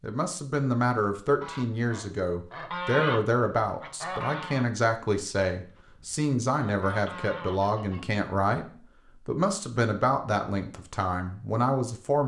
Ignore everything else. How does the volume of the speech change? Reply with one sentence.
The volume of the speech stays about the same.